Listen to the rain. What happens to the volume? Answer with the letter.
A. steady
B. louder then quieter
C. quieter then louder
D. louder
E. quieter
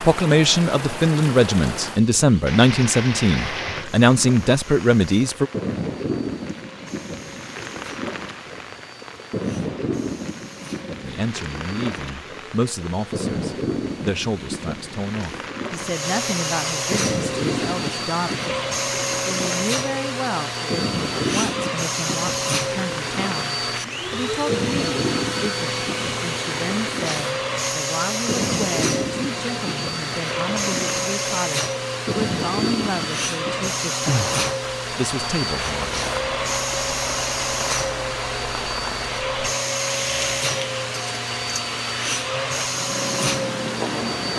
A.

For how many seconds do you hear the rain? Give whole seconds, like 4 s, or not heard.
44 s.